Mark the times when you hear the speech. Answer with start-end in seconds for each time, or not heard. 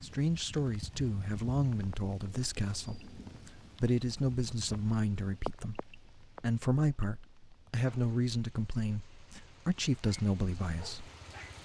0.0-11.1.